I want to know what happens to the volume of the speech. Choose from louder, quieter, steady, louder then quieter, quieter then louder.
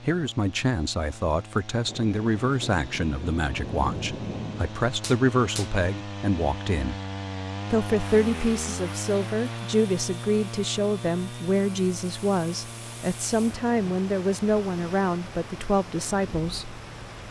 steady.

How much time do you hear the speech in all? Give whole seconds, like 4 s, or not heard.
16 s.